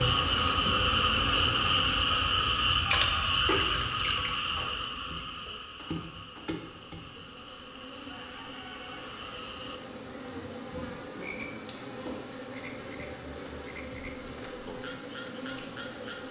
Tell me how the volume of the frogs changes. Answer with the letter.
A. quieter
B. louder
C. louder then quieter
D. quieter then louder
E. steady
A.